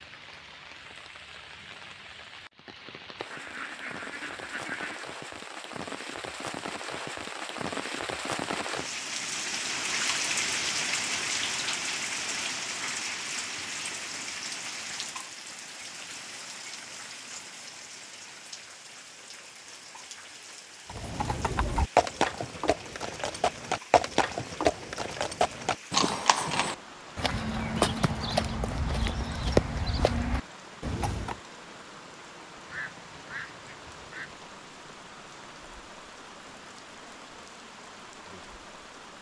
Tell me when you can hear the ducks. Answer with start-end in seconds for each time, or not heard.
3.3-5.0, 32.6-34.4.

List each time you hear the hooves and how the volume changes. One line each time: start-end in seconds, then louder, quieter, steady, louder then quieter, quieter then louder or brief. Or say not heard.
20.9-31.4 steady.